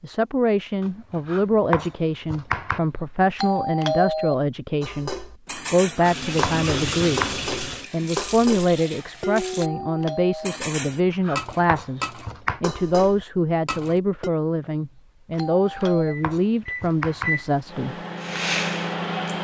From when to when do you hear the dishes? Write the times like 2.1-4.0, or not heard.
4.8-14.3.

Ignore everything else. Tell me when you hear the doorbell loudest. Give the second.
4 s.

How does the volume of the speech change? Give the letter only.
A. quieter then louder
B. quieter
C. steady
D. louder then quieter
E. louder
C.